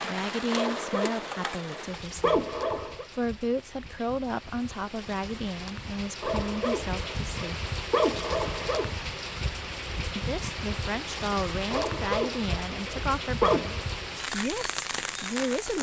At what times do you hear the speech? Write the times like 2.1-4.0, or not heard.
0.0-2.4, 3.1-7.5, 10.2-15.7.